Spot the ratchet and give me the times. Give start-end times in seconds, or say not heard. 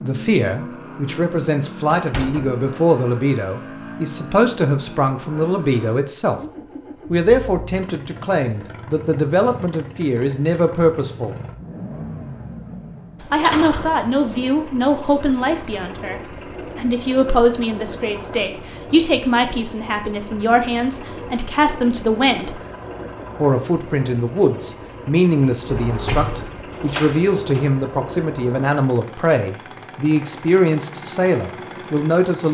not heard.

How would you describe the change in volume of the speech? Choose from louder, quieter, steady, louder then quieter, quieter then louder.
steady.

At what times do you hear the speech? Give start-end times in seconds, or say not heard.
0.0-6.4, 7.1-11.3, 13.3-22.6, 23.4-32.5.